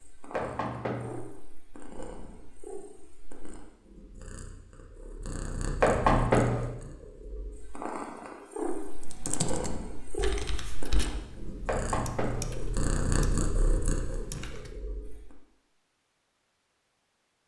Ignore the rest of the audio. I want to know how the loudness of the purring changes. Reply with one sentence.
The loudness of the purring goes up.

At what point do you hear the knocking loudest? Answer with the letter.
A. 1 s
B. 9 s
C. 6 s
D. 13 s
C.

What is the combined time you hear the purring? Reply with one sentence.
The purring can be heard for 15 seconds in total.